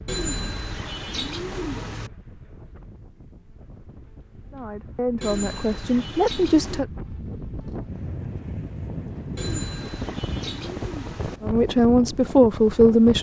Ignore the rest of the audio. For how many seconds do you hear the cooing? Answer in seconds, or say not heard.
6 s.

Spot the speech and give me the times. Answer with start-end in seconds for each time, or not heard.
4.5-6.8, 11.4-13.1.